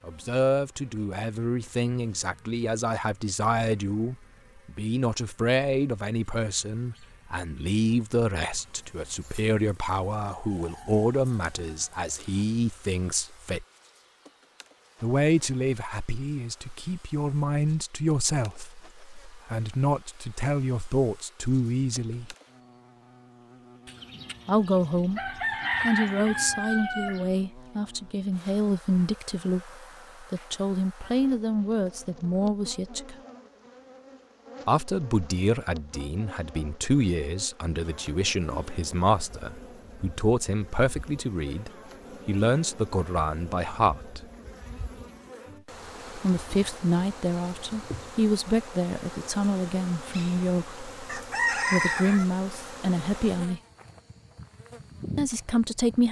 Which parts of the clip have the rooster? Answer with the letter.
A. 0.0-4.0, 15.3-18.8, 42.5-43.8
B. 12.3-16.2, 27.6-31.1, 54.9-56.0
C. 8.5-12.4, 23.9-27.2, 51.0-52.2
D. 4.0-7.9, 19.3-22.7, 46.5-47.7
C.